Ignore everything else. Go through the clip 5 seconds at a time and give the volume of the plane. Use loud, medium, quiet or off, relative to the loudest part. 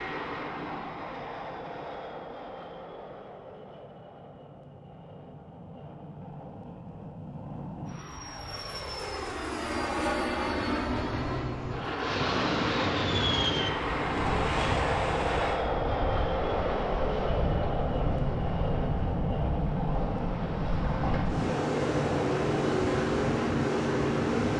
medium, medium, loud, loud, loud.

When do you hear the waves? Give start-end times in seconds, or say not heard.
11.9-24.5.